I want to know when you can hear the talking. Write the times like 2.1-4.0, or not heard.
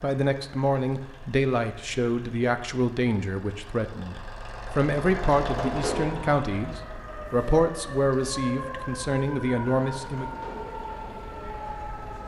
0.0-10.3.